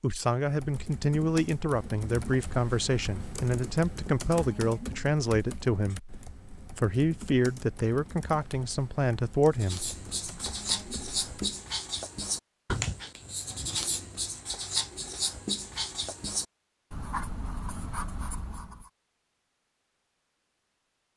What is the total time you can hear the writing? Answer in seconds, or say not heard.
9 s.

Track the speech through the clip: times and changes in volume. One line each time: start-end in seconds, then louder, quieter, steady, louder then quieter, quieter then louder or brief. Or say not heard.
0.0-9.9 steady.